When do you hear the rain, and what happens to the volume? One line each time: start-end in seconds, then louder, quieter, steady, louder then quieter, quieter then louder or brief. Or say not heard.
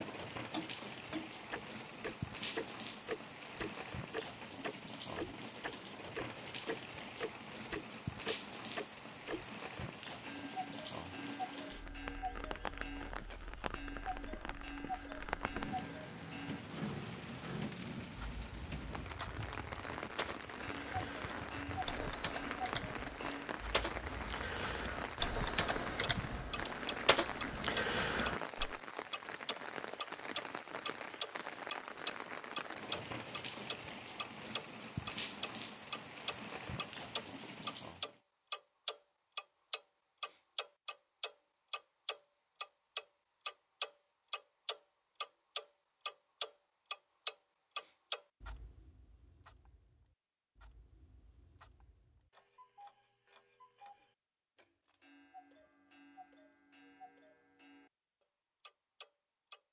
0.0-38.2 steady.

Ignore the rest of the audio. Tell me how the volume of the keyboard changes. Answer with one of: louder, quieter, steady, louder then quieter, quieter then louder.
louder.